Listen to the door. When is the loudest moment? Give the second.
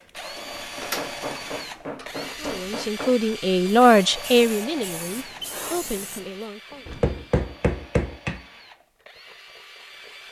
1 s.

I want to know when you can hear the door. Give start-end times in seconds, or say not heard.
0.1-2.8, 6.7-7.2.